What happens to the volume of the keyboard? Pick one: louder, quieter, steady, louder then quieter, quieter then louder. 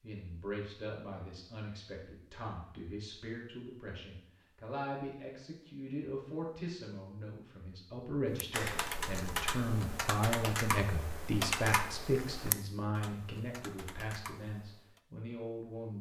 quieter.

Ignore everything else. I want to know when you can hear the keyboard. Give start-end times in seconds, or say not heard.
8.3-15.0.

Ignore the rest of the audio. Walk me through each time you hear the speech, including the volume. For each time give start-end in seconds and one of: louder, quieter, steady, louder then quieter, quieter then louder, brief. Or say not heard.
0.0-15.9 louder then quieter.